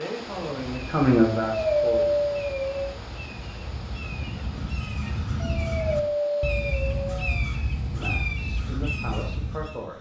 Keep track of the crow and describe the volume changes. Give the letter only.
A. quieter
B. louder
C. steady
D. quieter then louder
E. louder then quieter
B.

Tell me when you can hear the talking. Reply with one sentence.
The talking can be heard from 0.0 to 2.1 s and from 7.9 to 9.9 s.